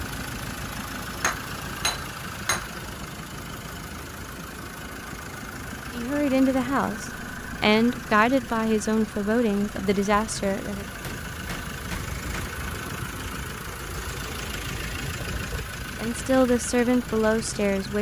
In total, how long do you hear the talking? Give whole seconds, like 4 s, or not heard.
7 s.